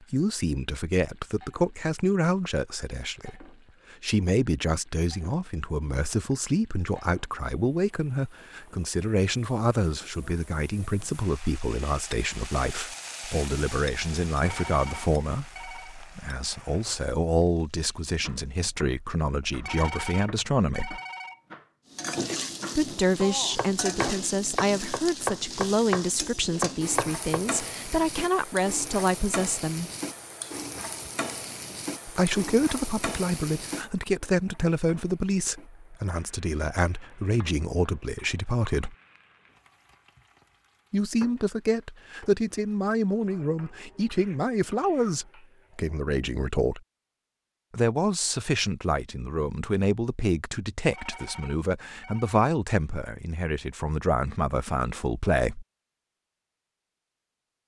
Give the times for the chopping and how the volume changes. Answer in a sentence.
The chopping can be heard from 18.2 to 27.4 s, getting louder.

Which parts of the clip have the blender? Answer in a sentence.
You can't hear the blender here.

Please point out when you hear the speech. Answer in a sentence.
The speech can be heard from 0.1 to 21.0 s, from 22.8 to 29.9 s, from 32.0 to 39.0 s, from 40.9 to 46.8 s and from 47.7 to 55.6 s.